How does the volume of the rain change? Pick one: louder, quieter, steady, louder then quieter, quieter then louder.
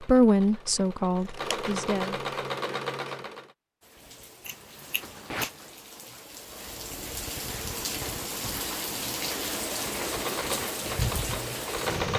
louder.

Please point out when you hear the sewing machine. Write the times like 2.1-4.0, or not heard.
0.0-3.5, 9.9-12.1.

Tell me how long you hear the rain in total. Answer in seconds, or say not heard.
8 s.